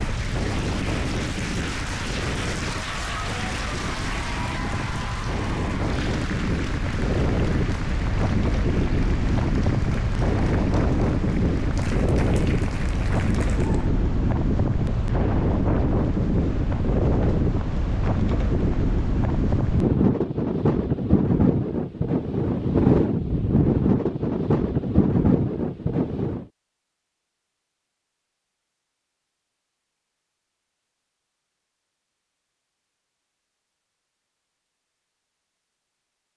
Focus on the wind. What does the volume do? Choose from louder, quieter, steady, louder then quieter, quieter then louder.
louder.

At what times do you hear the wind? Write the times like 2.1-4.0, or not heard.
0.0-26.4.